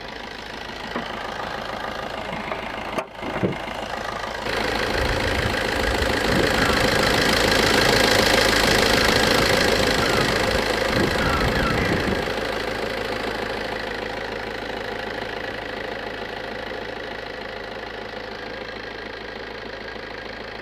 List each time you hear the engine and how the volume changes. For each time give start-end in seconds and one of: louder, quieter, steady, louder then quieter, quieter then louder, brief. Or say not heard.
0.0-20.5 louder then quieter.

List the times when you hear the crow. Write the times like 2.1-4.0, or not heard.
5.0-12.3.